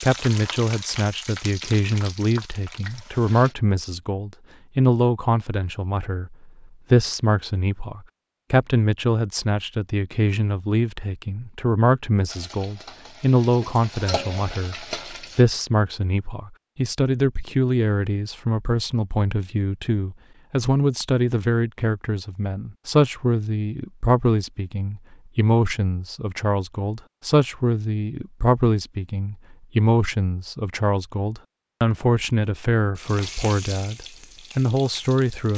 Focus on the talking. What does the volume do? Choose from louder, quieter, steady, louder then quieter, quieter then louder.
steady.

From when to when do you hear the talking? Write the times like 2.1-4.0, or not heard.
0.0-35.5.